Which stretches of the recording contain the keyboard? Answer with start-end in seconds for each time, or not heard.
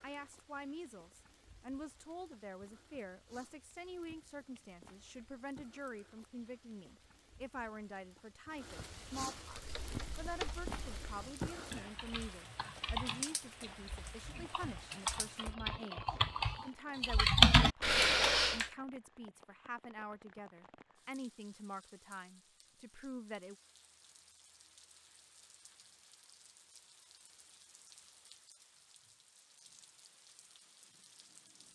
9.5-18.7.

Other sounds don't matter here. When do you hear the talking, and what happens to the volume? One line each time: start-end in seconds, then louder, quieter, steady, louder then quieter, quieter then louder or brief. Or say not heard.
0.0-23.6 steady.